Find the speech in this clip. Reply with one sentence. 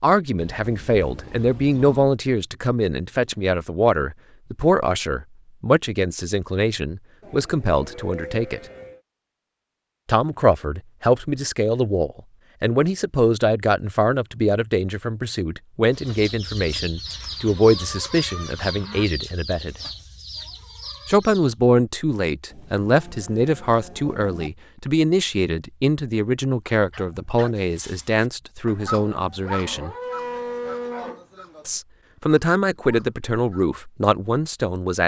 The speech can be heard from 0.0 to 8.6 s, from 10.1 to 19.8 s, from 21.1 to 29.9 s and from 31.6 to 35.0 s.